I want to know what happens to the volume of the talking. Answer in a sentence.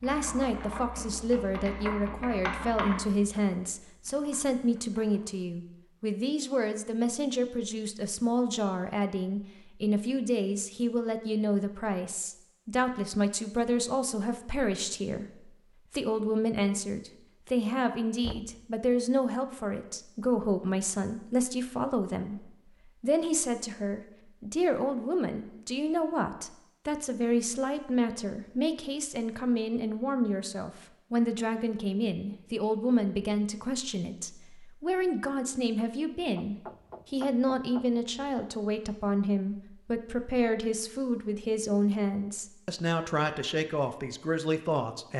The volume of the talking stays about the same.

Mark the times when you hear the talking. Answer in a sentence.
The talking can be heard from 0.0 to 45.1 s.